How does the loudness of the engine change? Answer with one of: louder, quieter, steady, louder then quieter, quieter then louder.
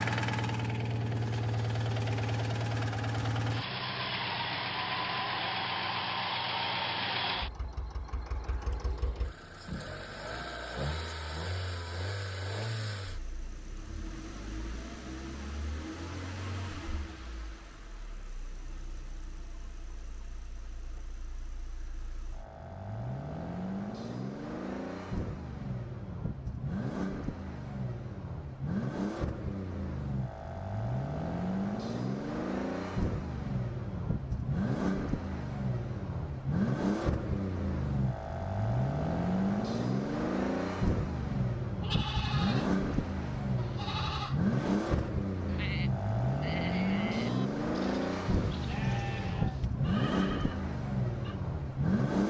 quieter then louder.